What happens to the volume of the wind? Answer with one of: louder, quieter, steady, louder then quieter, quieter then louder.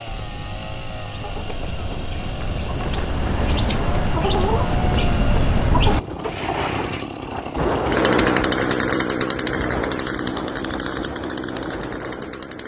louder then quieter.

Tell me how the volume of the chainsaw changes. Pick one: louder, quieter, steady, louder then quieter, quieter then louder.
louder then quieter.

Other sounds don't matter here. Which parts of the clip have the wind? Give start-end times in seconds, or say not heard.
0.0-12.6.